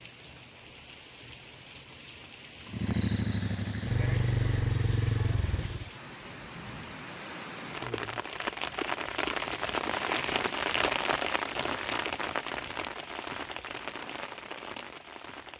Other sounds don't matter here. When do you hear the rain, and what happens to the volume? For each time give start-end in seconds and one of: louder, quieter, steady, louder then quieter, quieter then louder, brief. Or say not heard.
0.0-15.5 louder then quieter.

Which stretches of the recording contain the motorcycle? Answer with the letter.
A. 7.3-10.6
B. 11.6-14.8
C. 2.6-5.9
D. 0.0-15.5
C.